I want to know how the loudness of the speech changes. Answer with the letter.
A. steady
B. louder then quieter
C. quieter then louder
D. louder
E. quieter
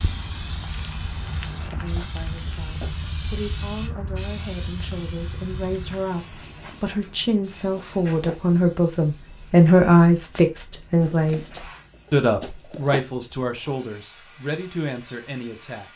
B.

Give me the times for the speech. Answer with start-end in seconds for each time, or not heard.
1.8-15.9.